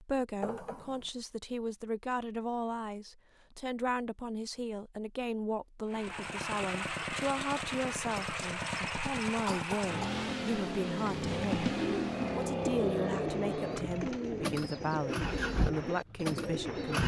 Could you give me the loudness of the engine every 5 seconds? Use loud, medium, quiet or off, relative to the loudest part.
off, loud, loud, loud.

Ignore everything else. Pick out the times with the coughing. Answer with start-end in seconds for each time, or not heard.
0.4-1.1, 9.4-10.2.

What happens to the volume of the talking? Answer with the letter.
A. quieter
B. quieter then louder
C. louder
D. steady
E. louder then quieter
D.